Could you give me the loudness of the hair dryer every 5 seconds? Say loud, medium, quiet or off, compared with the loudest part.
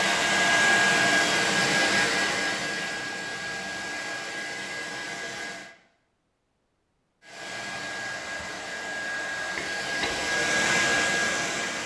loud, medium, loud.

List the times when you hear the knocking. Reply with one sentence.
You can hear the knocking from 9.6 to 10.2 s.